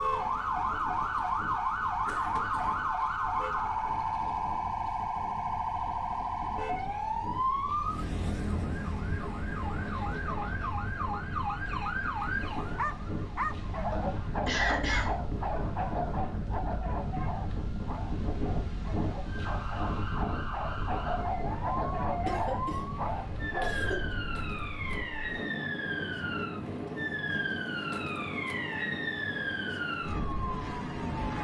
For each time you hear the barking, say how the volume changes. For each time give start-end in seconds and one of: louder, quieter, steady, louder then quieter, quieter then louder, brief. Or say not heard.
12.8-23.8 quieter then louder.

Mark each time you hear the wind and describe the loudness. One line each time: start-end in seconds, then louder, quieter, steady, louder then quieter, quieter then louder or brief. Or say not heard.
0.0-31.2 louder.